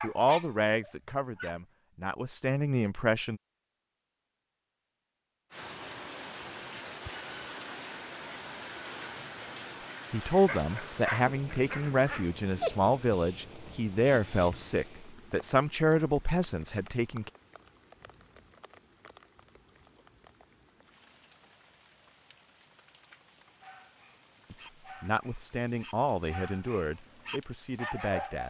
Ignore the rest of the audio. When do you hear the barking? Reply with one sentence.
You can hear the barking from 0.0 to 1.6 s, from 10.4 to 14.8 s and from 23.6 to 28.4 s.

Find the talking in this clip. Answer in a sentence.
You can hear the talking from 0.0 to 3.4 s, from 10.1 to 17.3 s and from 24.5 to 28.4 s.